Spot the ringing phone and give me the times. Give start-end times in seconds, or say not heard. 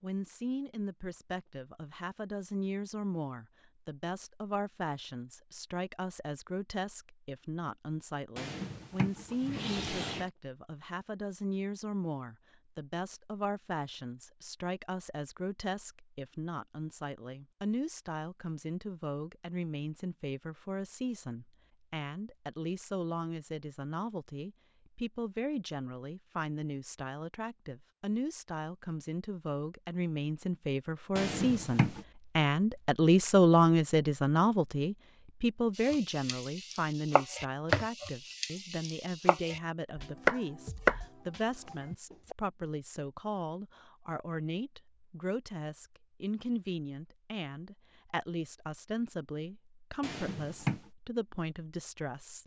not heard.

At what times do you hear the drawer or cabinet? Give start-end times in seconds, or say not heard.
8.3-10.3, 31.1-32.0, 50.0-50.8.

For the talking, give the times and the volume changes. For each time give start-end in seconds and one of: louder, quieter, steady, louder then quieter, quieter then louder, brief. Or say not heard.
0.0-52.4 louder then quieter.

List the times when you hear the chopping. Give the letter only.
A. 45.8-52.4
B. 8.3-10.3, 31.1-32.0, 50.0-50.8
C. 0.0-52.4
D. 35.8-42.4
D.